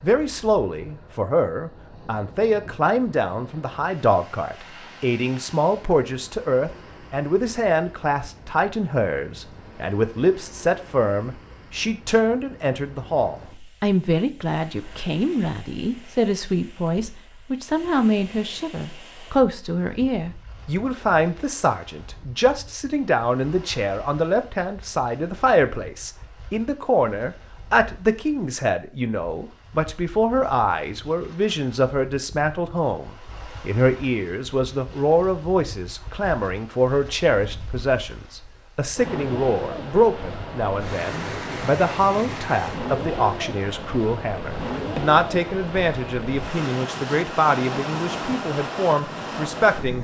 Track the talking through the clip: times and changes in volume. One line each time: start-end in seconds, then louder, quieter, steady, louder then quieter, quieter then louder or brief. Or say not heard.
0.0-49.9 steady.